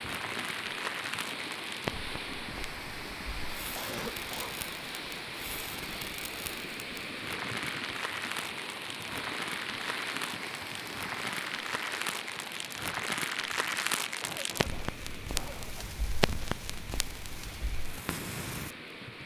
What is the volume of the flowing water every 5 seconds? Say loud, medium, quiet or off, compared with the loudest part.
loud, loud, loud, medium.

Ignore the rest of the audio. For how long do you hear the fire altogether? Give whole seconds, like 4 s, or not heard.
19 s.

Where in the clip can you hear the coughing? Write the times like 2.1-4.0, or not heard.
3.8-4.5, 14.2-16.0.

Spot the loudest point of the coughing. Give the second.
4 s.